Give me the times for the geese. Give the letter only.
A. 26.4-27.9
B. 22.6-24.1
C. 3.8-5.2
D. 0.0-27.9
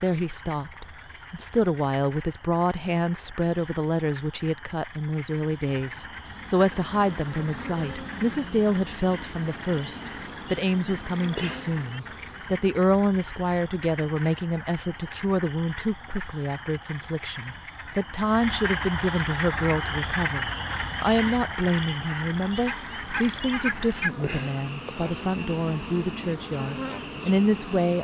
B.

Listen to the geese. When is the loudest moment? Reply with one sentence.
The volume of the geese peaks at 24 seconds.